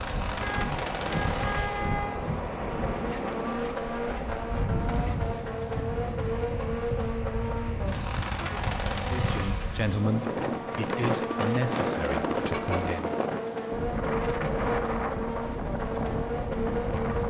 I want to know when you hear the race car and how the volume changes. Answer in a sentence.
You can hear the race car from 0.0 to 17.2 s, at a steady volume.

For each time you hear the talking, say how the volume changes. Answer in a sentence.
The talking can be heard from 9.1 to 13.1 s, getting quieter.